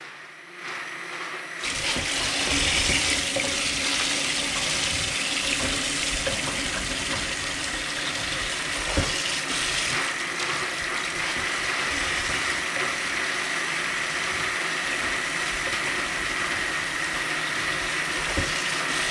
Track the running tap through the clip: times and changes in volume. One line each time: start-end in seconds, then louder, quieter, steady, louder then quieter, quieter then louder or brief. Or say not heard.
1.6-19.0 quieter.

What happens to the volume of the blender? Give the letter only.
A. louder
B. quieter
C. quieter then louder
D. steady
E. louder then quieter
A.